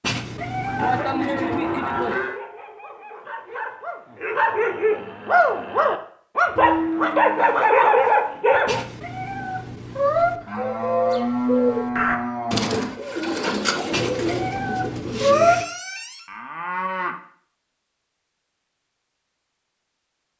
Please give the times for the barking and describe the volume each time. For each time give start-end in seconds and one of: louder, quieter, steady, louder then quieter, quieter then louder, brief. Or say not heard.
0.6-8.8 louder.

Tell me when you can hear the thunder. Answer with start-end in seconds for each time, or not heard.
not heard.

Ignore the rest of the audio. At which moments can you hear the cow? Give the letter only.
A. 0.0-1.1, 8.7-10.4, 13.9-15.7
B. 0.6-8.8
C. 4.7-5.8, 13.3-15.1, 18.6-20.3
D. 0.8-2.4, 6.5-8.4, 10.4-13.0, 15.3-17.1
D.